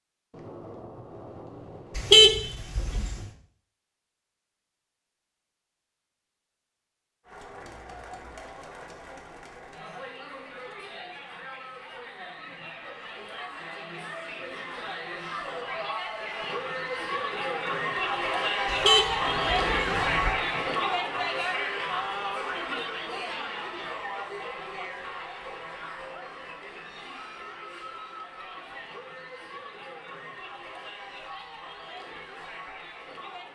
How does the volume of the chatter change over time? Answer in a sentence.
The loudness of the chatter goes up, then down.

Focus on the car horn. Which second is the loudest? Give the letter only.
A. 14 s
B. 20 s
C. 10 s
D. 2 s
D.